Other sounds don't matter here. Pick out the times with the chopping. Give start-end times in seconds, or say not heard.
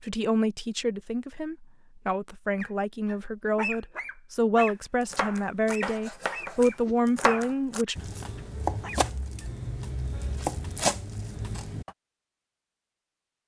5.0-11.9.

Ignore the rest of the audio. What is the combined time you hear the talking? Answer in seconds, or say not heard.
8 s.